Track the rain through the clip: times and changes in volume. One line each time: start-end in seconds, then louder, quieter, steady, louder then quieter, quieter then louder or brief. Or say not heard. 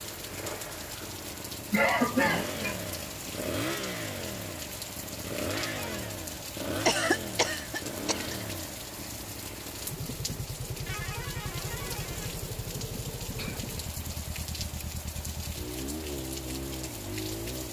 0.0-17.6 steady.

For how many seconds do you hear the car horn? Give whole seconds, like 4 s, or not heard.
2 s.